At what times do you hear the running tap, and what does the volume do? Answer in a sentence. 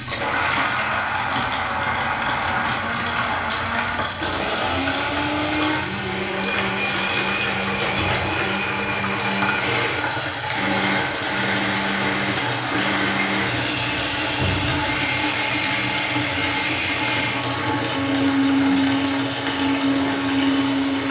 You can hear the running tap from 0.0 to 21.0 s, at a steady volume.